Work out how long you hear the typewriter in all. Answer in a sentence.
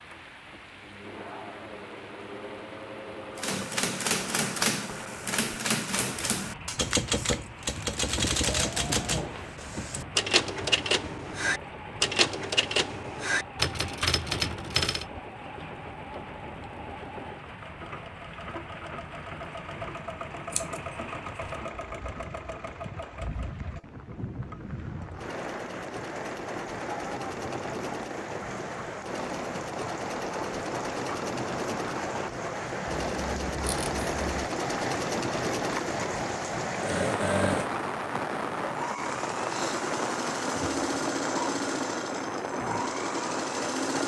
The typewriter can be heard for 12 seconds in total.